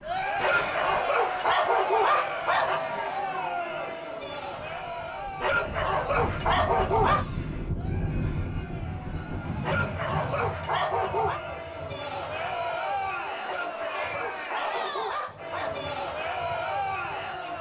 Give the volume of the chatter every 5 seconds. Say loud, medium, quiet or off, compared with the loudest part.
loud, medium, loud, loud.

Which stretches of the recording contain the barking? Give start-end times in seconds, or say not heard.
0.4-2.8, 5.4-7.2, 9.6-11.4, 13.4-15.8.